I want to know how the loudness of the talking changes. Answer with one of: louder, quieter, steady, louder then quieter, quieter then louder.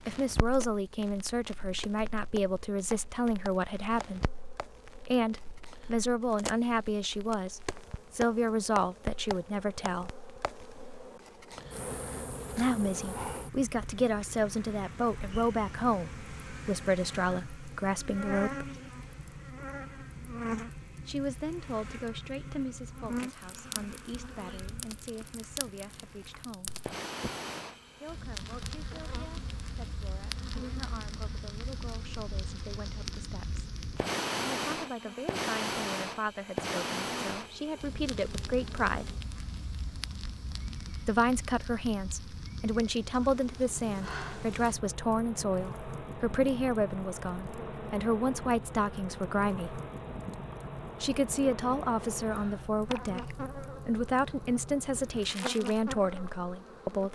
quieter then louder.